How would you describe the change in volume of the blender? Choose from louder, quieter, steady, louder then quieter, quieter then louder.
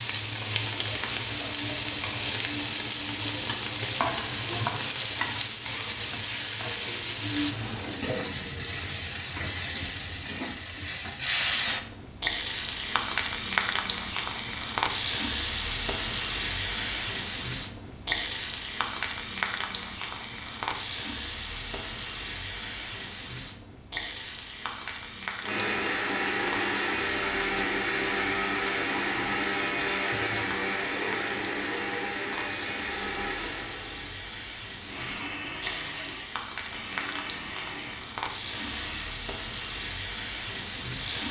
quieter.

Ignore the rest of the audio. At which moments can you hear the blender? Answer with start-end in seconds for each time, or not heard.
25.4-39.1.